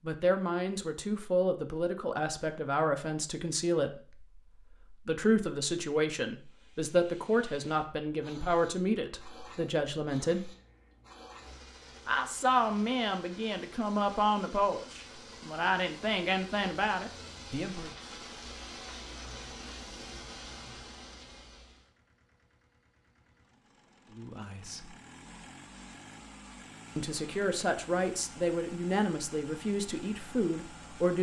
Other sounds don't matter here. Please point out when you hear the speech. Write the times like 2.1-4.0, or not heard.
0.0-10.5, 12.1-17.9, 24.1-24.9, 26.9-31.1.